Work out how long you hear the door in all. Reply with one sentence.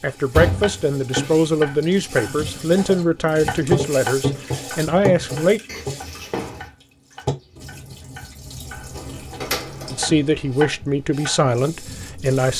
You can hear the door for 4 seconds altogether.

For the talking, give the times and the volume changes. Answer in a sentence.
The talking can be heard from 0.0 to 5.6 s, at a steady volume; and briefly from 9.9 to 12.5 s.